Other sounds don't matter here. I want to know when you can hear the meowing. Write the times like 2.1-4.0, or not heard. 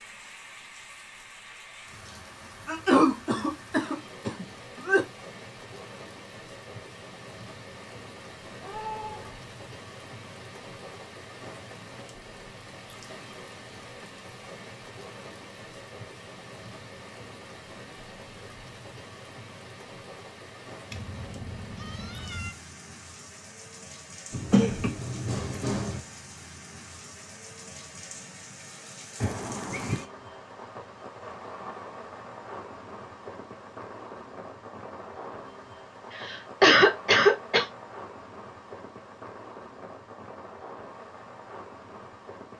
8.6-9.4, 20.9-22.6, 29.2-30.1.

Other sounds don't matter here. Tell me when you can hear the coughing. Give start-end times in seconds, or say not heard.
2.6-5.0, 24.3-26.0, 36.1-37.6.